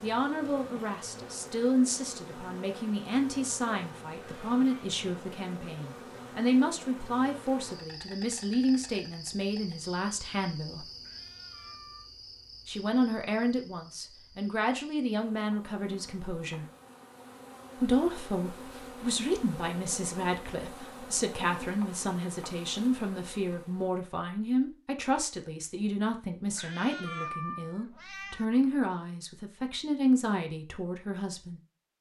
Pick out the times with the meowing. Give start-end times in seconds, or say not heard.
4.2-4.9, 11.0-12.1, 26.6-28.4.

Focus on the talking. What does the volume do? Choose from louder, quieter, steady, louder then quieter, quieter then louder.
steady.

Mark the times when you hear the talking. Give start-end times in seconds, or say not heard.
0.0-10.8, 12.7-16.6, 17.8-31.6.